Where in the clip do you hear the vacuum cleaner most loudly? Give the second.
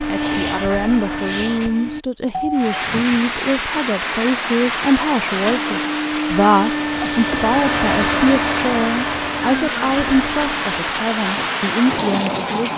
8 s.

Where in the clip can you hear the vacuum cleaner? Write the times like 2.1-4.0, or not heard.
0.0-2.0, 5.5-10.8.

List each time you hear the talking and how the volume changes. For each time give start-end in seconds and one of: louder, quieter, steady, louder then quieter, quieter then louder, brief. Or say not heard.
0.1-12.7 steady.